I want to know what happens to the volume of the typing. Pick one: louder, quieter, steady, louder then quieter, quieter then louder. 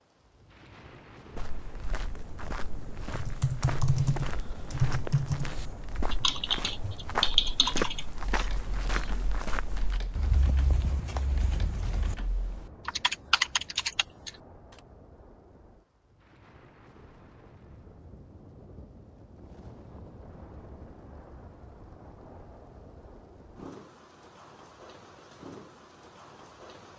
quieter then louder.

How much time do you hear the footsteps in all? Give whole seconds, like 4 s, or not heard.
11 s.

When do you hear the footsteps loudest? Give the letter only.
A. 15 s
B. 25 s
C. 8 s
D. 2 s
C.